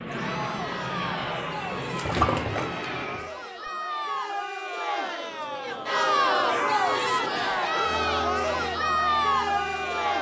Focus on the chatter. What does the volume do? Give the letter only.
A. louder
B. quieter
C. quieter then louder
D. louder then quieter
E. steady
A.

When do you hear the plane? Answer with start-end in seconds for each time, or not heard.
0.0-3.4, 5.2-10.1.